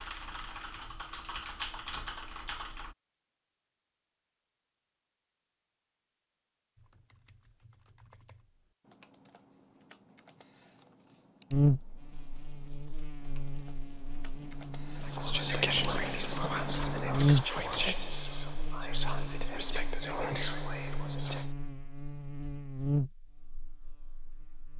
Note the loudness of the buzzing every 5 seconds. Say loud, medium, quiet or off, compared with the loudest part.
off, off, loud, loud, medium.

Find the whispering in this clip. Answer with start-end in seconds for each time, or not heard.
15.1-21.4.